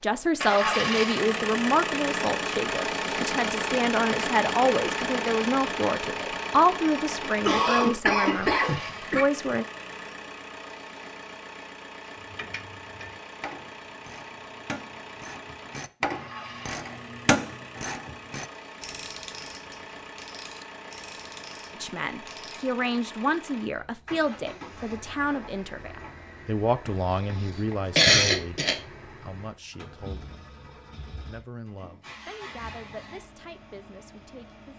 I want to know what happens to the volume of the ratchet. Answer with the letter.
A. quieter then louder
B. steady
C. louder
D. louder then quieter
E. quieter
D.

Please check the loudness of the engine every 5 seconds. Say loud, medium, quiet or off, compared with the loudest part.
loud, medium, quiet, quiet, quiet, quiet, quiet.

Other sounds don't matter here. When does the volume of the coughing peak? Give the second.
28 s.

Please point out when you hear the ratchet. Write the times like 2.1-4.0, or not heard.
12.2-22.8.